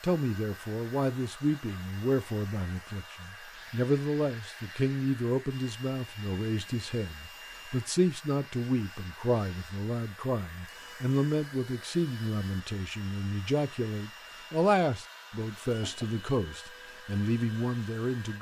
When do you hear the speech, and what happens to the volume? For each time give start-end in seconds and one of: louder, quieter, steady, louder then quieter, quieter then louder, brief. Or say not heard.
0.0-18.3 steady.